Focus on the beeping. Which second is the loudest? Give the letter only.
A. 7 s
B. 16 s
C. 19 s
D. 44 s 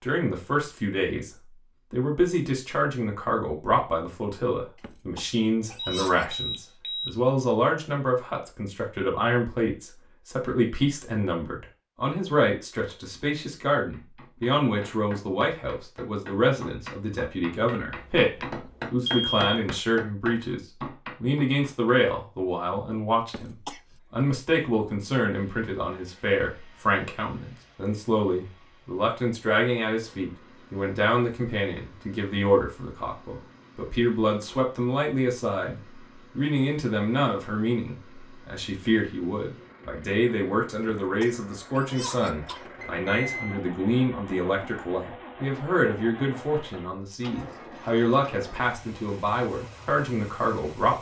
C.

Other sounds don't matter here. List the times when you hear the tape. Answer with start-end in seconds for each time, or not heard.
not heard.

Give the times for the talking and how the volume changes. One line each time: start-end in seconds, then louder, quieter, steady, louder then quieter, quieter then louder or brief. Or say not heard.
0.0-1.3 brief
1.9-20.6 steady
21.2-50.9 steady.